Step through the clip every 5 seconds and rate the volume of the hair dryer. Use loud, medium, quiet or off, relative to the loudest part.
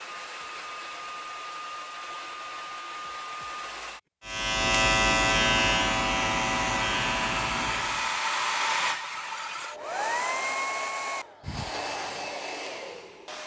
medium, loud, loud.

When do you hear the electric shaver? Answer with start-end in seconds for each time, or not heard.
4.2-8.2.